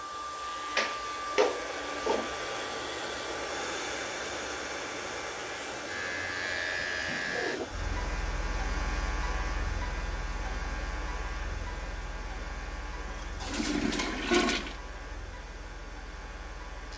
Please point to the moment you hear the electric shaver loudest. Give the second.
7 s.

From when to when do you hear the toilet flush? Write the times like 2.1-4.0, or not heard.
0.8-2.2, 7.0-7.7, 13.1-14.8.